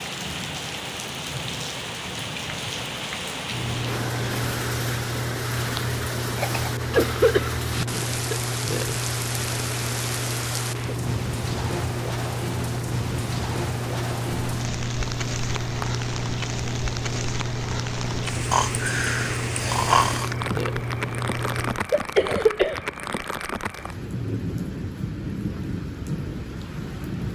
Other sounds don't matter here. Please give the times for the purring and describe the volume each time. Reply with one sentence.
You can hear the purring from 3.5 to 21.8 s, at a steady volume.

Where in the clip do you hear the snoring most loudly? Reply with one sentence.
The loudest moment of the snoring is at 20 seconds.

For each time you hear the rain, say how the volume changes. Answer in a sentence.
You can hear the rain from 0.0 to 27.3 s, at a steady volume.